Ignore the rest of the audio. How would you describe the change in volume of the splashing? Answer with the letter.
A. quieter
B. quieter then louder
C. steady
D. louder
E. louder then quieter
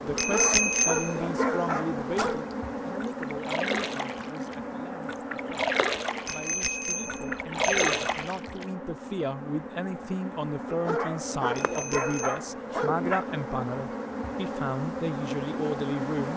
D.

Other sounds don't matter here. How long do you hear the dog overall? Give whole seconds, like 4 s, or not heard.
5 s.